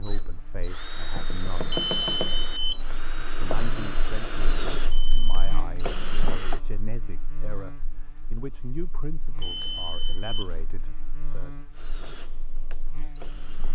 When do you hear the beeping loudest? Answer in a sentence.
The volume of the beeping peaks at 2 seconds.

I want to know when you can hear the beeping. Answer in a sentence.
The beeping can be heard from 1.7 to 3.0 s, from 4.9 to 5.7 s and from 9.4 to 10.6 s.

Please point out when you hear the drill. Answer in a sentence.
The drill can be heard from 0.0 to 6.6 s and from 11.7 to 13.7 s.